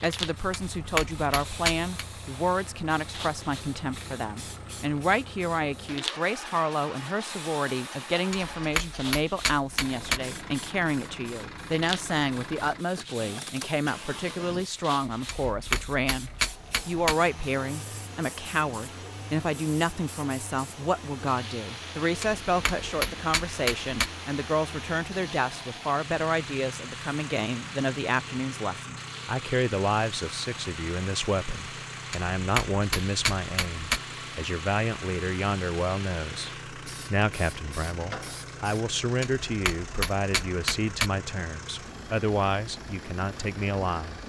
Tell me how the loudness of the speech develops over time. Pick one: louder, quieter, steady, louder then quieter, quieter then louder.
steady.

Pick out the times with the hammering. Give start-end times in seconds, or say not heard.
0.5-2.0, 8.3-10.2, 15.2-17.1, 22.2-24.1, 32.1-34.0, 39.2-41.1.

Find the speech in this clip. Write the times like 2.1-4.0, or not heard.
0.0-44.2.